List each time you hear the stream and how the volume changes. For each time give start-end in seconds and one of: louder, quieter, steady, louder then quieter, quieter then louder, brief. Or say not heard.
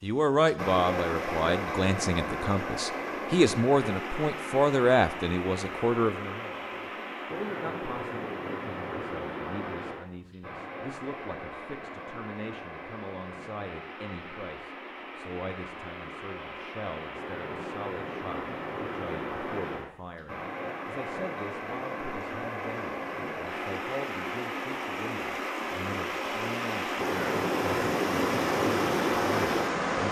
0.0-30.0 quieter then louder.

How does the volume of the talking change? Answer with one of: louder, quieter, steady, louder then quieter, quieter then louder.
quieter.